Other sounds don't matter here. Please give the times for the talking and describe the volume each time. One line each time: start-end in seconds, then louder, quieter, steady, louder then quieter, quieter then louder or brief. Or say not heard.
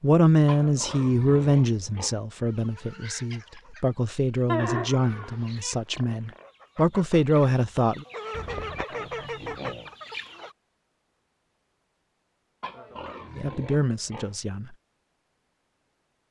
0.0-8.1 quieter then louder
13.3-14.7 brief.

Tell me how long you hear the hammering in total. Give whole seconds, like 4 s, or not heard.
not heard.